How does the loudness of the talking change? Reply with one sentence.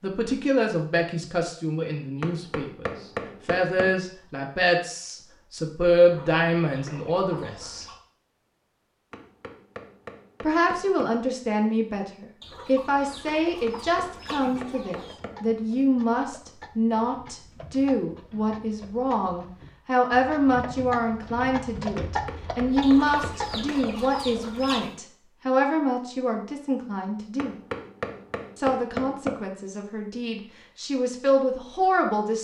The volume of the talking stays about the same.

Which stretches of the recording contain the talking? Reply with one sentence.
The talking can be heard from 0.0 to 7.8 s, from 10.4 to 27.6 s and from 28.6 to 32.3 s.